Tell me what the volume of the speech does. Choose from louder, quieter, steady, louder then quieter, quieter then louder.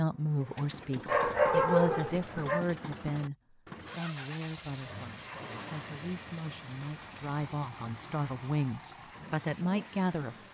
quieter then louder.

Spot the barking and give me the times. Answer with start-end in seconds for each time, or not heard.
1.1-2.6.